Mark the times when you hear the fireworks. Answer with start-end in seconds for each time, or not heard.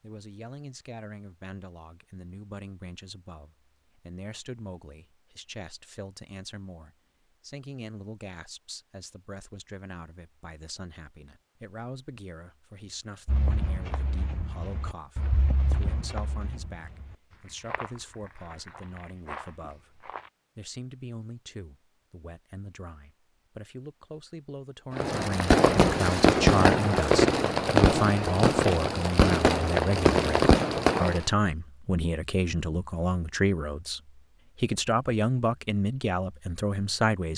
24.9-31.2.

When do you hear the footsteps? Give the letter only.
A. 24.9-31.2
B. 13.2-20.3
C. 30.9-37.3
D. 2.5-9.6
B.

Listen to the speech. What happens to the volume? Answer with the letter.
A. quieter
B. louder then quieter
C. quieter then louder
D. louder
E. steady
D.